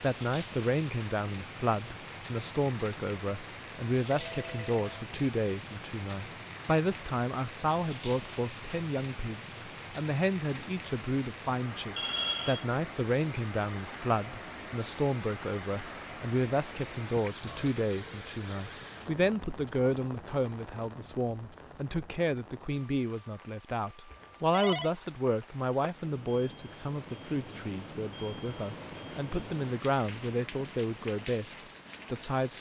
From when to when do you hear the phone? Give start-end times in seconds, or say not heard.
4.1-4.8, 11.9-12.7, 24.1-24.9.